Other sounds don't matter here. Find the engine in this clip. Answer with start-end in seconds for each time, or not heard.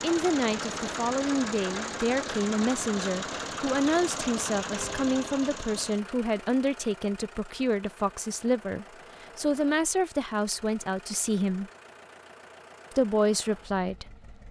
0.0-14.4.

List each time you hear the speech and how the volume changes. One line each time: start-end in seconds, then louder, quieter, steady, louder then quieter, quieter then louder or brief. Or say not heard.
0.0-11.7 steady
12.9-14.2 brief.